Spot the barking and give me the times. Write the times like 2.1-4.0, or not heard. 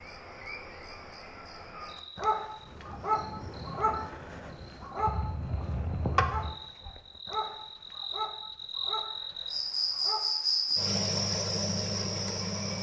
2.1-10.8.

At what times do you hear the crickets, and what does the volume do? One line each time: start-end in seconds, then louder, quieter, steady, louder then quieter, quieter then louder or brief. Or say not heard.
0.0-12.7 louder.